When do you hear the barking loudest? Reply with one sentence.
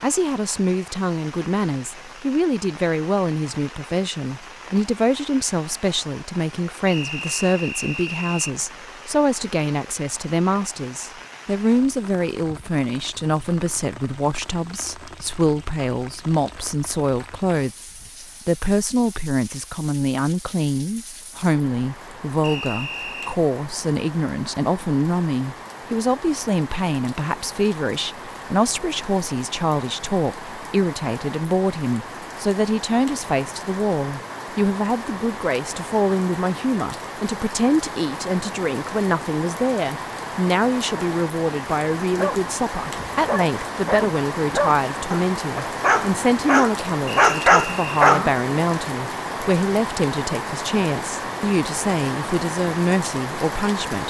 The volume of the barking peaks at 47 seconds.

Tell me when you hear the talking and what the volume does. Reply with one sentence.
You can hear the talking from 0.0 to 54.0 s, at a steady volume.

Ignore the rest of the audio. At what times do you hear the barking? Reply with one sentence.
You can hear the barking from 42.1 to 48.4 s.